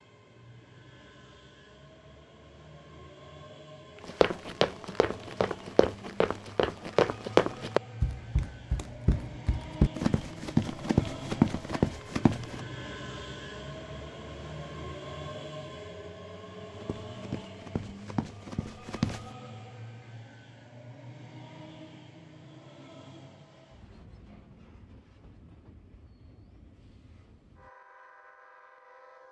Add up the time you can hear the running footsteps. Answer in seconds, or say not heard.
11 s.